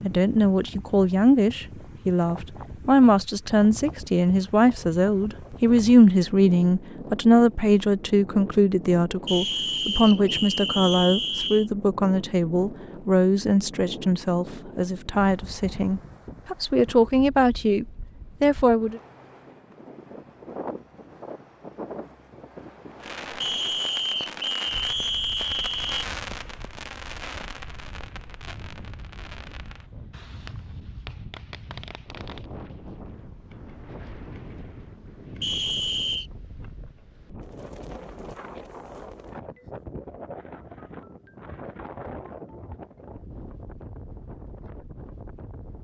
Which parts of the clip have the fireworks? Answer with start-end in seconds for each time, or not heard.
23.0-32.5.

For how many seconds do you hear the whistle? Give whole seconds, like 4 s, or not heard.
6 s.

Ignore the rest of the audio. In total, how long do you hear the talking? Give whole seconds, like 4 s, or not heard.
19 s.